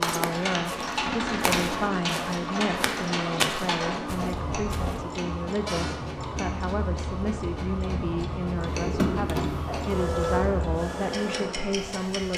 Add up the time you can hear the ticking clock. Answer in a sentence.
The ticking clock can be heard for 12 seconds in total.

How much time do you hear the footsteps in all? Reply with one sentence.
The footsteps can be heard for 5 seconds in total.